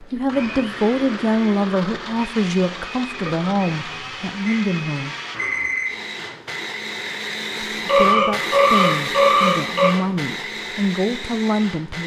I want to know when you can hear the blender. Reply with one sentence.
You can hear the blender from 0.0 to 12.0 s.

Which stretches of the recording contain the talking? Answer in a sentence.
The talking can be heard from 0.0 to 5.2 s and from 7.8 to 12.0 s.